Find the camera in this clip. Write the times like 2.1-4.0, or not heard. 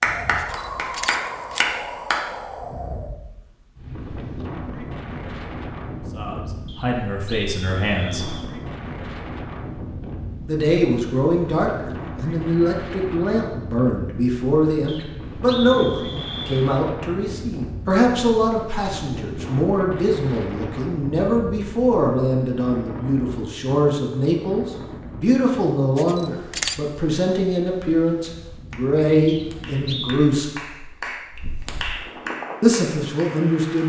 0.3-1.7, 25.9-26.8.